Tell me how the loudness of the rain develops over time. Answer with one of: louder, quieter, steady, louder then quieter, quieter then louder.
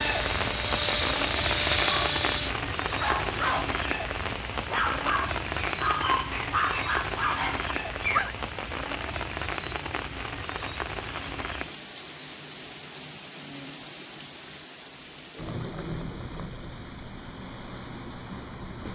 quieter.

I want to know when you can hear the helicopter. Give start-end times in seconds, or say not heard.
0.0-2.5.